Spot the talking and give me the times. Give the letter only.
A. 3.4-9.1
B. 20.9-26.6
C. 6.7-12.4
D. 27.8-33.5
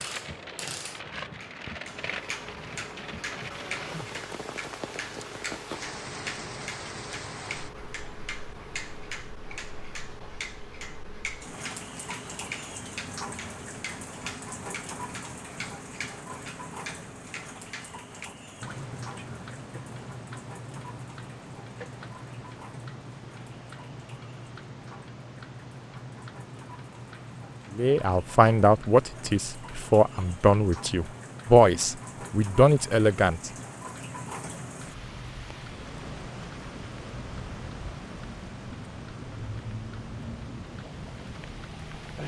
D.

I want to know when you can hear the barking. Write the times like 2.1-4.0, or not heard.
not heard.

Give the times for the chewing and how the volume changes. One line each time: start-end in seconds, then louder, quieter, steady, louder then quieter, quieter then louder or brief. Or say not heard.
not heard.